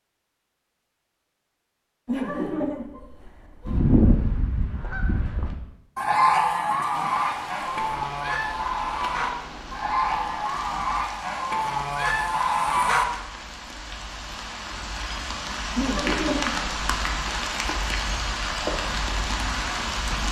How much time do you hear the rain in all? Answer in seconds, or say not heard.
13 s.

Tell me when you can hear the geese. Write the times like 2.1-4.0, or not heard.
3.6-13.1.